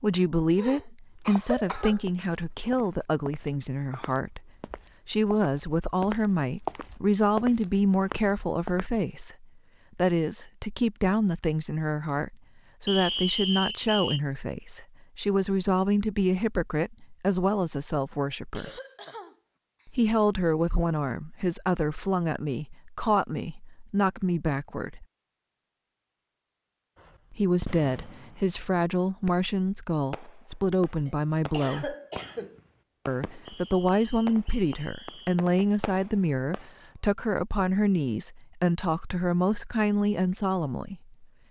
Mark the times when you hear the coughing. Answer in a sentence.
The coughing can be heard from 0.6 to 2.0 s, from 18.5 to 19.9 s and from 31.1 to 32.6 s.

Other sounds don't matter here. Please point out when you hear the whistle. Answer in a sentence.
You can hear the whistle from 12.8 to 14.2 s and from 33.5 to 35.4 s.